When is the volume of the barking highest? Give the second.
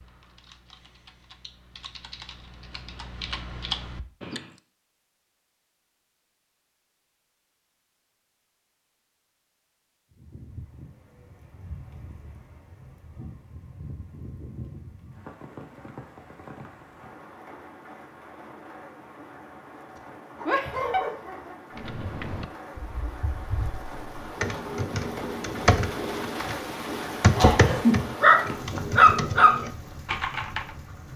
29 s.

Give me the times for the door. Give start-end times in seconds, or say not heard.
not heard.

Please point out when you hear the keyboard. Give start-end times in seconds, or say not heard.
0.0-4.6, 21.8-30.8.